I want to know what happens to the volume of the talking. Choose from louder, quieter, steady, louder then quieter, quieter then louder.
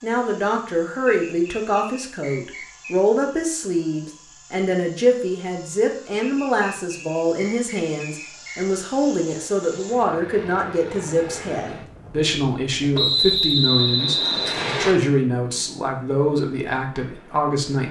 steady.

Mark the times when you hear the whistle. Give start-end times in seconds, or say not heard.
1.1-3.0, 6.2-8.8, 12.9-14.9.